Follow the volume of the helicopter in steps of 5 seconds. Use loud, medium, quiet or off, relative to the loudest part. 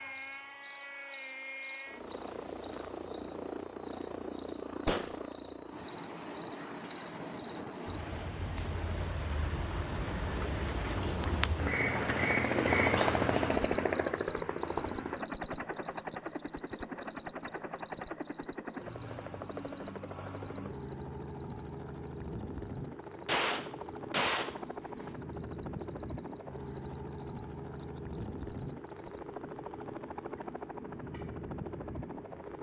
medium, medium, loud, medium, medium, medium, medium.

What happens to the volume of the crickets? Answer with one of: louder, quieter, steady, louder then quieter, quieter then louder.
louder then quieter.